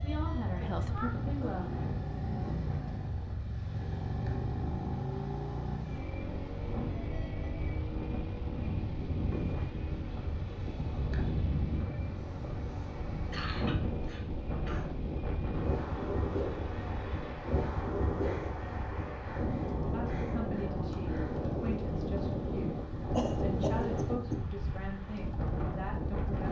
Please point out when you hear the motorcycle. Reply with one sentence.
You can hear the motorcycle from 0.0 to 26.4 s.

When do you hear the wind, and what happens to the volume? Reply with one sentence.
You can hear the wind from 0.0 to 26.4 s, getting louder.